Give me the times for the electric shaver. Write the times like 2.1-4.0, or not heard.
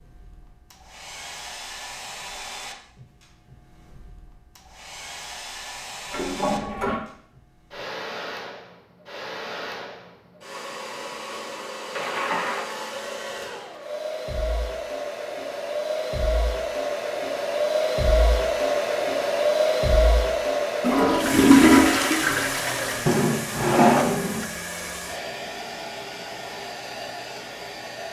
not heard.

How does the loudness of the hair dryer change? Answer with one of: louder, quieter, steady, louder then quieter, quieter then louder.
louder then quieter.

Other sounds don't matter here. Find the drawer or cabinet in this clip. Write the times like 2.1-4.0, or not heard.
23.1-24.4.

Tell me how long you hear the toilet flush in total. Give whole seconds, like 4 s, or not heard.
4 s.